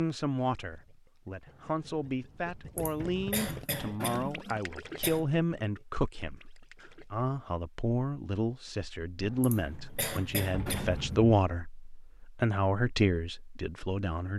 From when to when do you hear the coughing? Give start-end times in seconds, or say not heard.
2.8-5.2, 9.4-11.2.